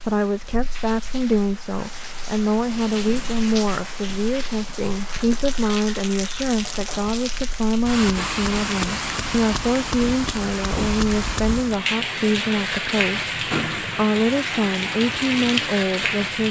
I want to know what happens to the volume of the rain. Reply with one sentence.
The loudness of the rain goes up.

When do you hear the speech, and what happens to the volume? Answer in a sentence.
The speech can be heard from 0.0 to 16.4 s, at a steady volume.